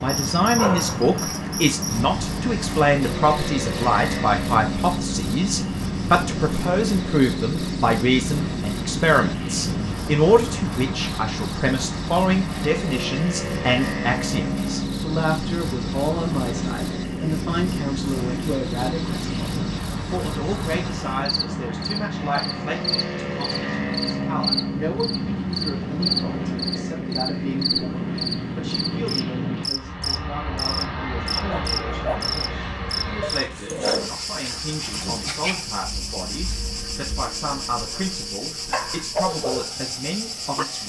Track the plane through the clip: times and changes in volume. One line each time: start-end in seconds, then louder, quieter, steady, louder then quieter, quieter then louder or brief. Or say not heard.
0.0-40.8 quieter.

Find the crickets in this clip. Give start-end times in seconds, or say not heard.
0.0-40.8.